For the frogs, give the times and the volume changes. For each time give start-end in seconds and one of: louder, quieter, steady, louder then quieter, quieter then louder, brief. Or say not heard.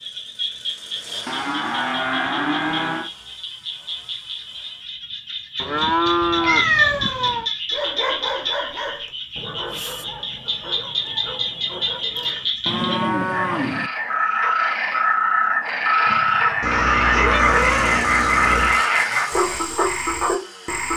0.0-20.9 louder.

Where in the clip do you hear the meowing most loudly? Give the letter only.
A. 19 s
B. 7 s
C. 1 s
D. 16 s
B.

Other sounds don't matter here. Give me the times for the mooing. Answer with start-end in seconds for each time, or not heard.
1.2-3.1, 5.6-7.1, 12.7-13.9, 16.1-17.5.